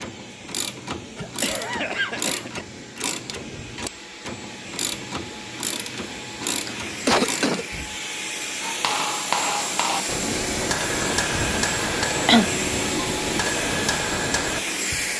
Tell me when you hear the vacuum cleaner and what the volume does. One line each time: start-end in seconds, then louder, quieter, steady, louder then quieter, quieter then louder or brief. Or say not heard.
0.0-15.1 louder.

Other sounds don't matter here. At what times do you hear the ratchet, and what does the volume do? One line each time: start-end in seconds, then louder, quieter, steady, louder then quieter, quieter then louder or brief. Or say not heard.
0.0-7.7 steady.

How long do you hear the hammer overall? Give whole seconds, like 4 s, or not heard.
6 s.